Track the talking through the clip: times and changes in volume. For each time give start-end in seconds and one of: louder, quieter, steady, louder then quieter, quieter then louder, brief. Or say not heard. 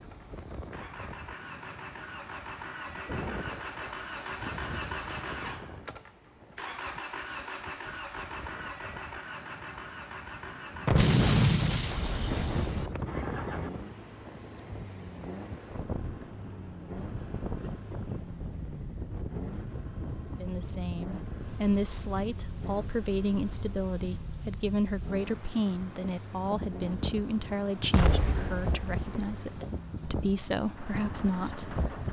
20.4-31.8 steady.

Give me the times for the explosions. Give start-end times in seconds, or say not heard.
10.8-12.9, 27.9-29.4.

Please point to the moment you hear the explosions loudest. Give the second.
11 s.